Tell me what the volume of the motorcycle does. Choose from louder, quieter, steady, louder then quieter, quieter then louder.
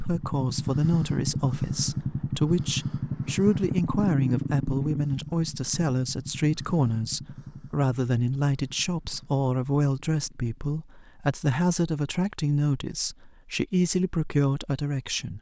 quieter.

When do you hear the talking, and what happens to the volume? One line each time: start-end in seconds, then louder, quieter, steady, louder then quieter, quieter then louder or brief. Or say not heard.
0.0-15.3 steady.